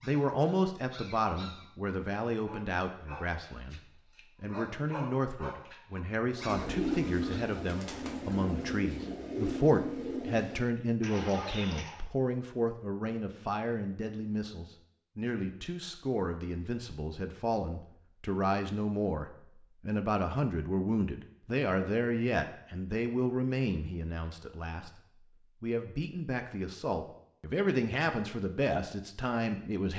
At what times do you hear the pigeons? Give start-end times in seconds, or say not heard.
6.3-12.1.